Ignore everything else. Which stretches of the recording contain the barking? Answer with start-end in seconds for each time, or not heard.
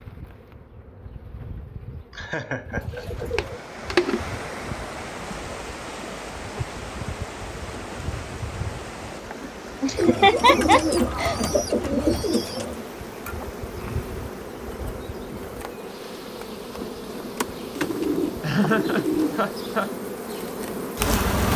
not heard.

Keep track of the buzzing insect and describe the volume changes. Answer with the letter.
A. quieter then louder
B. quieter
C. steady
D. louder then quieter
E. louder
E.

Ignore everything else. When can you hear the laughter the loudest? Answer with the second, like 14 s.
10 s.